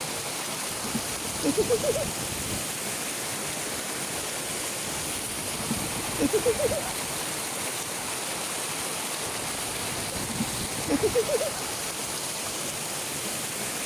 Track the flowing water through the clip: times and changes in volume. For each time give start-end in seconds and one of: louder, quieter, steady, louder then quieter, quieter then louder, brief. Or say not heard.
0.0-13.8 steady.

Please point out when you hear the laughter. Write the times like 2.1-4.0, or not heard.
0.8-2.1, 5.5-6.9, 10.2-11.6.